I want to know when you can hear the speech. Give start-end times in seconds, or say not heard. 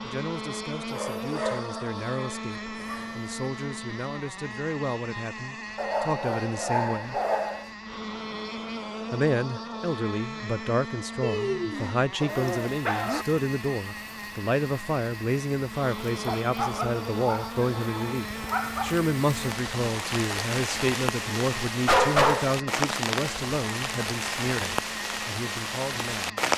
0.0-7.2, 9.1-26.4.